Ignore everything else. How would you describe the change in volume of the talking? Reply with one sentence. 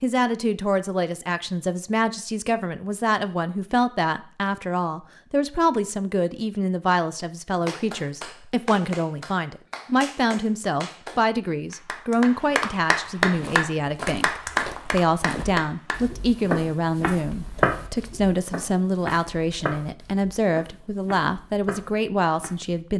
The volume of the talking stays about the same.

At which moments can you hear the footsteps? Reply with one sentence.
The footsteps can be heard from 13.3 to 22.8 s.